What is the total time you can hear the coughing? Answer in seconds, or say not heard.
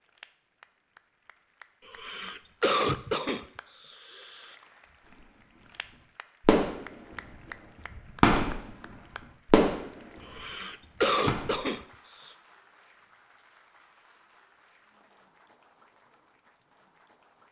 5 s.